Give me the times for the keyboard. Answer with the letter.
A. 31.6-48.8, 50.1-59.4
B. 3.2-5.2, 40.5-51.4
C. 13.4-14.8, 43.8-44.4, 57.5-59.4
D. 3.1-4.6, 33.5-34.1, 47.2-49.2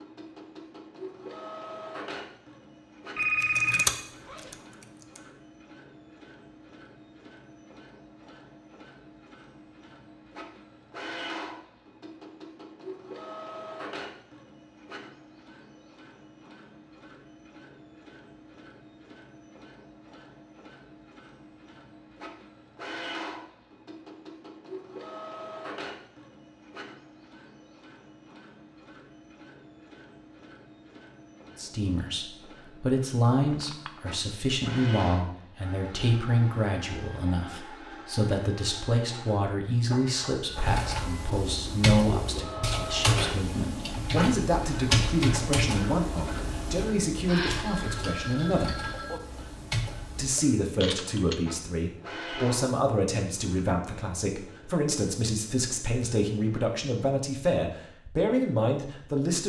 B.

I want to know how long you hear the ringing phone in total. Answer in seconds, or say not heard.
4 s.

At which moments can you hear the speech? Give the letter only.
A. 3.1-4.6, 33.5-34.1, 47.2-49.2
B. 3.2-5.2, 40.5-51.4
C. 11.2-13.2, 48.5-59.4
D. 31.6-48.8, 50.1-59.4
D.